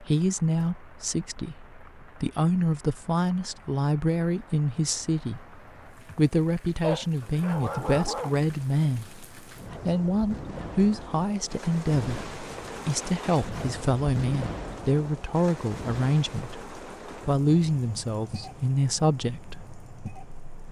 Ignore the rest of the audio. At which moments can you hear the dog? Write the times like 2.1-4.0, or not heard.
6.8-8.5.